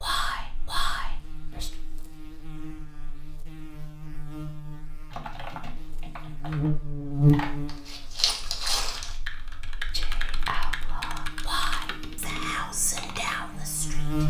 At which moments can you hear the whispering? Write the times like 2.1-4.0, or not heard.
0.0-1.7, 9.8-14.2.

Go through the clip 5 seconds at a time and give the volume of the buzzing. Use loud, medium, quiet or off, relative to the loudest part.
quiet, loud, medium.